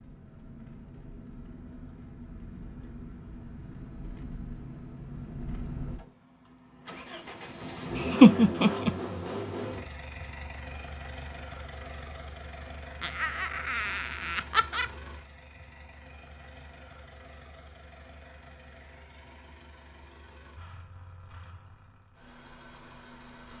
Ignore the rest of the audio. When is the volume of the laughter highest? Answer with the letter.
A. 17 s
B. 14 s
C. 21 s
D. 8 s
D.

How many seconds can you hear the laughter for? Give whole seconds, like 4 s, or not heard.
3 s.